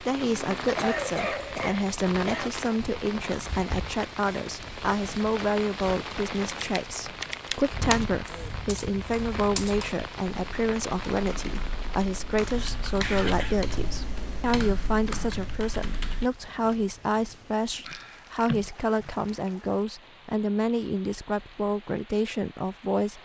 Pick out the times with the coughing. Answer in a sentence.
The coughing can be heard from 0.6 to 2.5 s, from 12.9 to 13.7 s and from 17.8 to 19.5 s.